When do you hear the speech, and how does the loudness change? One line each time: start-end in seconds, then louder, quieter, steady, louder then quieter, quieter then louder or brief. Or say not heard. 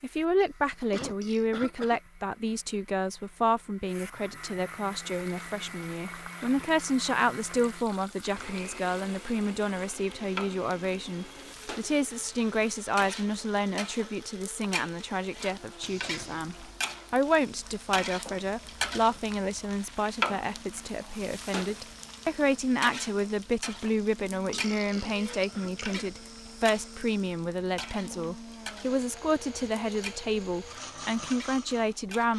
0.0-32.3 steady.